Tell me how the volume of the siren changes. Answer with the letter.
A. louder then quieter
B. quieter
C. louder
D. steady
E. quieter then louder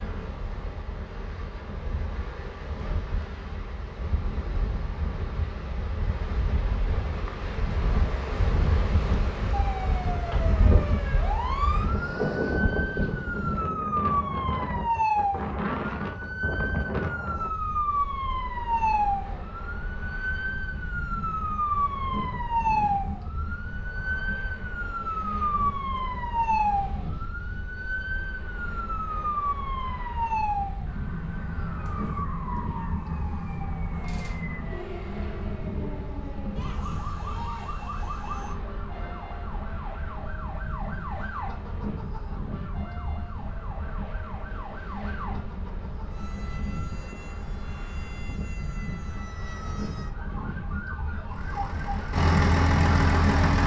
B.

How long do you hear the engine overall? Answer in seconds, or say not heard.
2 s.